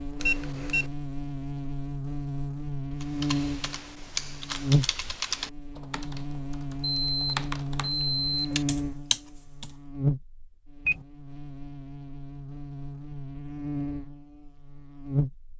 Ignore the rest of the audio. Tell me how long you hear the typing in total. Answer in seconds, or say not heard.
7 s.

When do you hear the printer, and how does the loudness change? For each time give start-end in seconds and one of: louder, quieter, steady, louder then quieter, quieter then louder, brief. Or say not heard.
not heard.